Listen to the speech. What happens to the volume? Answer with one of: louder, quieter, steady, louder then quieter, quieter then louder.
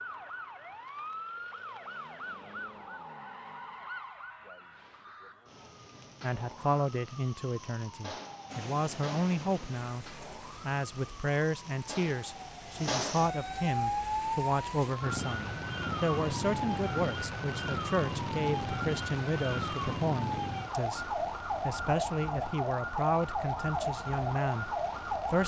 steady.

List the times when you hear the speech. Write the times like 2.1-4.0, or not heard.
6.2-25.4.